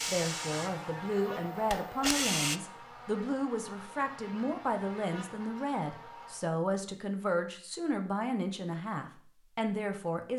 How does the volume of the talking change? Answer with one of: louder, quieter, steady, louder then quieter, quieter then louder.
steady.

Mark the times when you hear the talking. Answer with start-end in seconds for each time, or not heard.
0.0-10.3.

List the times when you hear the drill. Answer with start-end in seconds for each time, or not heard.
0.0-2.6.